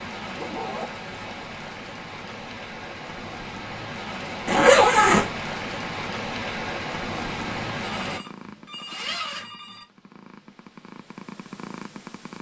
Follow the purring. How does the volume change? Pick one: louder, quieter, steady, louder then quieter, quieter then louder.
quieter then louder.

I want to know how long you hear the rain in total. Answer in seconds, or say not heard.
8 s.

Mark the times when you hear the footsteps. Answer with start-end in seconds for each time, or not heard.
not heard.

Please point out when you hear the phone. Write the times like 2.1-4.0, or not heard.
8.0-9.8.